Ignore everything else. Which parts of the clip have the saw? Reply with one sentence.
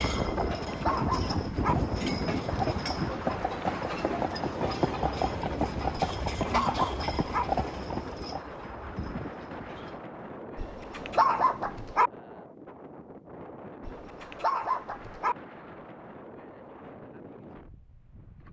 The saw can't be heard in this clip.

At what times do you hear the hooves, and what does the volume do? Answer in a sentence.
The hooves can be heard from 0.0 to 10.0 s, getting quieter.